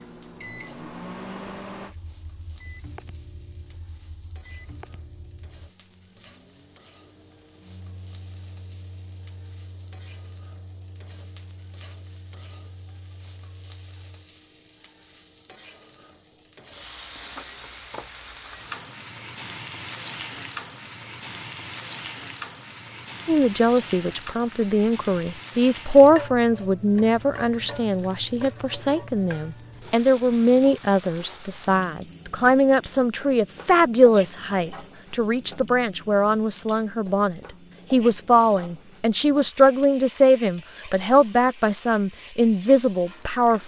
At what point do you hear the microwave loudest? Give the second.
1 s.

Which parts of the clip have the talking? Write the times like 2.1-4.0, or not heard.
23.2-43.6.